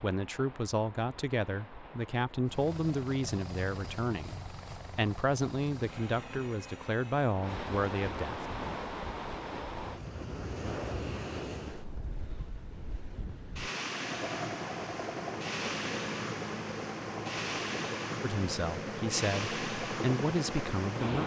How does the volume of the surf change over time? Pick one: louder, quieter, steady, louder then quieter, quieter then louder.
louder.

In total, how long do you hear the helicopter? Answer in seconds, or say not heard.
12 s.